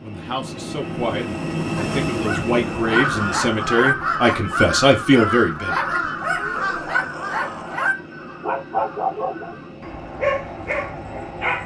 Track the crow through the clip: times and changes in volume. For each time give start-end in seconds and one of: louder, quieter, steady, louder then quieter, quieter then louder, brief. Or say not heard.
2.9-9.8 quieter.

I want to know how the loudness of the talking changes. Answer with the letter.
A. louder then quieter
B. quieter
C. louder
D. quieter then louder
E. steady
C.